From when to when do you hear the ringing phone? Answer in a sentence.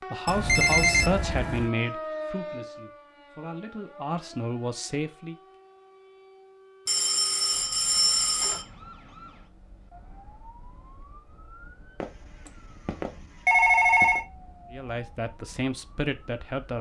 The ringing phone can be heard from 0.2 to 1.7 s, from 6.8 to 8.7 s and from 12.0 to 14.2 s.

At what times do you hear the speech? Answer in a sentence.
The speech can be heard from 0.1 to 5.3 s and from 14.7 to 16.7 s.